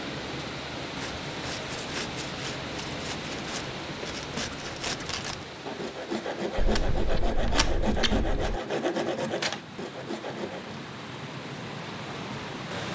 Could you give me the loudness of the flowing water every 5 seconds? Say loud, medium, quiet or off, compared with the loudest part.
loud, medium, loud.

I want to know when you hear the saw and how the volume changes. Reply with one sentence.
The saw can be heard from 0.8 to 10.8 s, getting louder.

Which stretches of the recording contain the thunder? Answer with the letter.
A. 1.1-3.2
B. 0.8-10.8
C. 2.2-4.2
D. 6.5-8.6
D.